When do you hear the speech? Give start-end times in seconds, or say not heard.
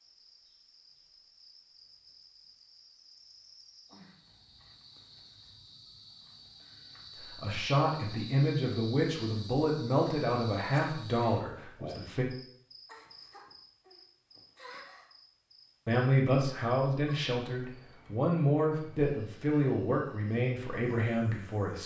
7.2-12.2, 15.8-21.8.